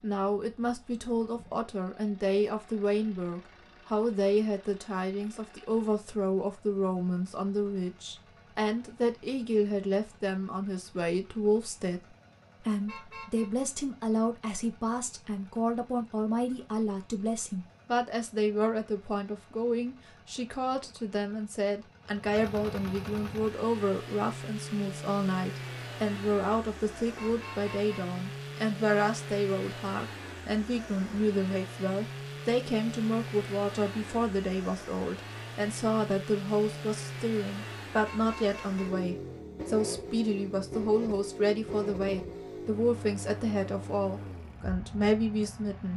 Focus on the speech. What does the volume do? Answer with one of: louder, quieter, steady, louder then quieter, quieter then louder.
steady.